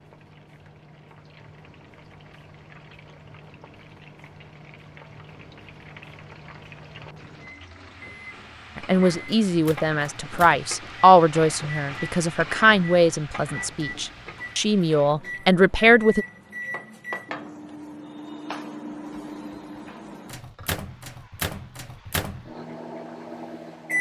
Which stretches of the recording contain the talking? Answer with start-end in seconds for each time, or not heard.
8.8-16.2.